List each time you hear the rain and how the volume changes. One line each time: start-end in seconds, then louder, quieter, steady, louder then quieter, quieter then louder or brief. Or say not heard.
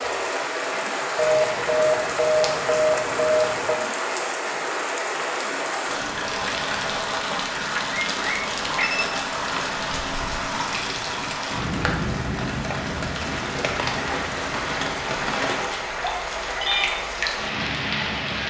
0.0-18.4 steady.